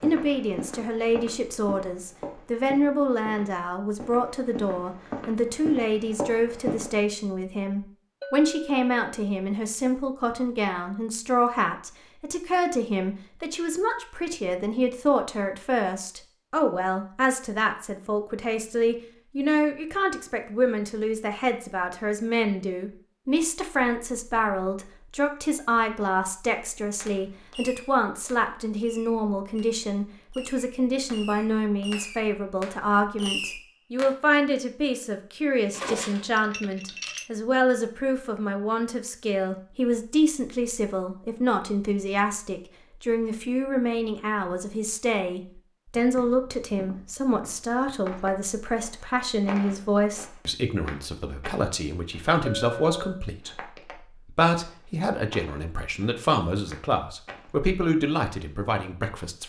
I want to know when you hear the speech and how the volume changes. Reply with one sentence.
You can hear the speech from 0.0 to 59.4 s, at a steady volume.